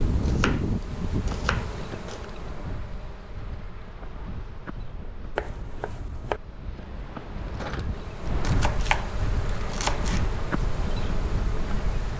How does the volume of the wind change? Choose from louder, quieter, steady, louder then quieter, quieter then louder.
louder.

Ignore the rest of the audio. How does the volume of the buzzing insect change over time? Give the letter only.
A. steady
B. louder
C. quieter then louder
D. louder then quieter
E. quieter
C.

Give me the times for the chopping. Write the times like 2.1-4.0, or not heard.
0.2-2.2, 5.3-6.4, 8.4-10.2.